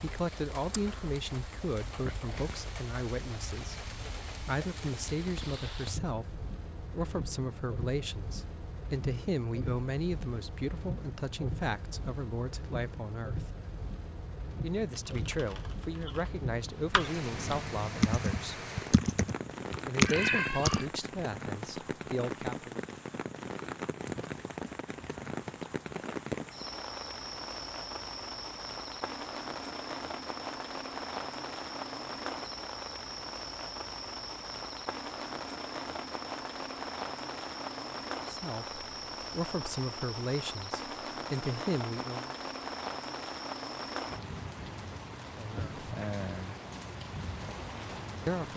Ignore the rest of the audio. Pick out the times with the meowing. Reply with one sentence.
You can hear the meowing from 19.5 to 20.9 s.